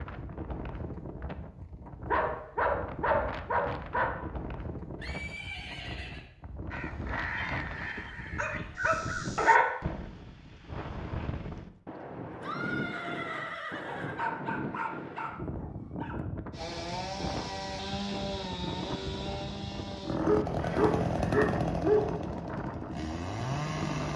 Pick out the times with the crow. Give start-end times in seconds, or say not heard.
6.7-9.6.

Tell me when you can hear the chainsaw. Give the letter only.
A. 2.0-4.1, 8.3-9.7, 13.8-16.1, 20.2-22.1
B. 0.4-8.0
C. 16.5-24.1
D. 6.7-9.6
C.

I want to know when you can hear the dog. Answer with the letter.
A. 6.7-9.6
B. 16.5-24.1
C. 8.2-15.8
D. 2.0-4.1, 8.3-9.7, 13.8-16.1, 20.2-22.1
D.